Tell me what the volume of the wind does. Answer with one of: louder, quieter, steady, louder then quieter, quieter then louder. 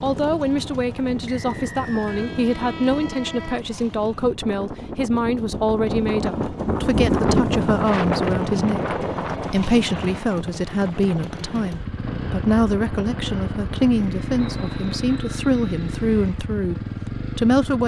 louder then quieter.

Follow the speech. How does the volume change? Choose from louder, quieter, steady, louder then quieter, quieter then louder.
steady.